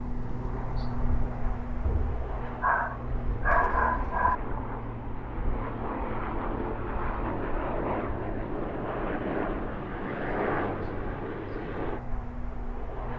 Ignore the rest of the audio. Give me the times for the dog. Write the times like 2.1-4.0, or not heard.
1.8-4.3.